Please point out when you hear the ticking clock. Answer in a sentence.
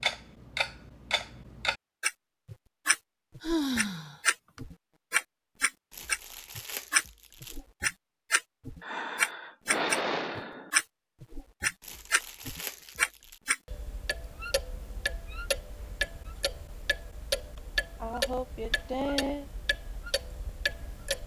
You can hear the ticking clock from 0.0 to 21.2 s.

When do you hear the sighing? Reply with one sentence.
You can hear the sighing from 3.4 to 4.6 s, from 8.8 to 10.7 s and from 17.6 to 19.4 s.